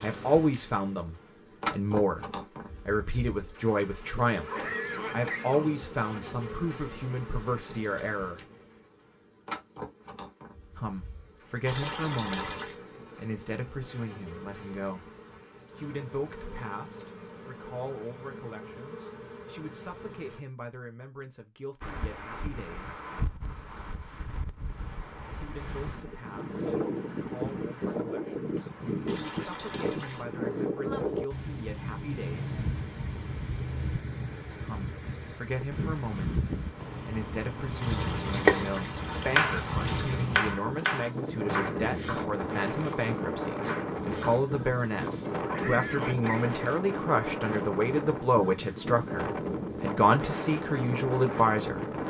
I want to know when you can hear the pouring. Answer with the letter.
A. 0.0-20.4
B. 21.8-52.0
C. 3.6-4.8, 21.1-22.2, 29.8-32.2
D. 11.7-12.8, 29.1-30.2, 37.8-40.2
D.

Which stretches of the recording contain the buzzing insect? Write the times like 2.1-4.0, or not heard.
0.0-20.4.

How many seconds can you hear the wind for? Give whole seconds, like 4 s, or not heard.
30 s.